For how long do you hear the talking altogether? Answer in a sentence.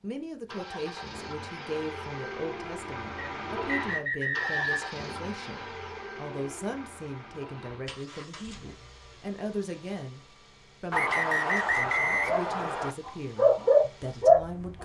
You can hear the talking for 14 seconds altogether.